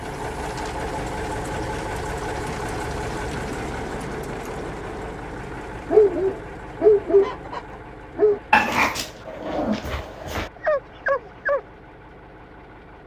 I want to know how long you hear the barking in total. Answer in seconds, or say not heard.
6 s.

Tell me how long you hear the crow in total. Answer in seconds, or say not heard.
not heard.